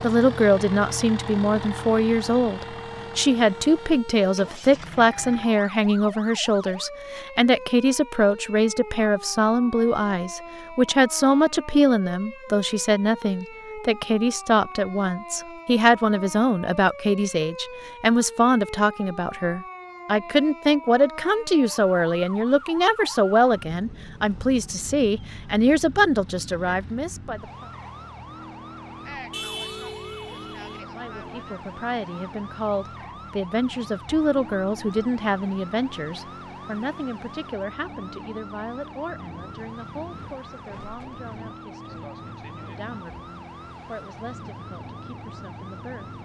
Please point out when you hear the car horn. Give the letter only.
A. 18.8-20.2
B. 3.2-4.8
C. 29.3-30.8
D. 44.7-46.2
C.